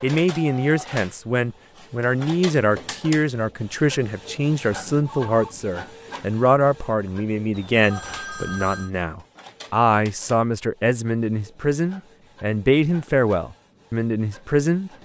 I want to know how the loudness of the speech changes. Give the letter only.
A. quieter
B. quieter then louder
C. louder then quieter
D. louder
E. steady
E.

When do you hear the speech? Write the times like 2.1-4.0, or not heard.
0.0-14.9.